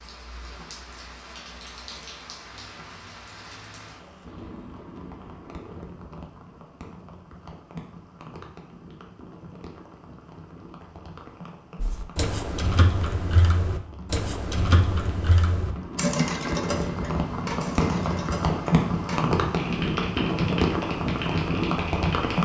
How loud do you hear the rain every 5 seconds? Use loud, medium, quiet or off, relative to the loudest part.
quiet, quiet, quiet, loud, loud.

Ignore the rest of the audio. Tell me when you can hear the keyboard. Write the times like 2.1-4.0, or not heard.
11.8-22.4.